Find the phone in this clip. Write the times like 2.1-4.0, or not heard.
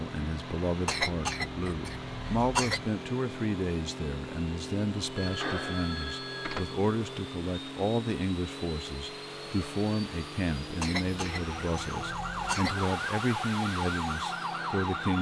5.2-6.8.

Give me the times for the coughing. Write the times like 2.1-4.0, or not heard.
0.8-2.9, 10.8-12.8.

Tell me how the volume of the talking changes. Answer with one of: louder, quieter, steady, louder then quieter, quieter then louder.
steady.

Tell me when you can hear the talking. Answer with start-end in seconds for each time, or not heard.
0.0-15.1.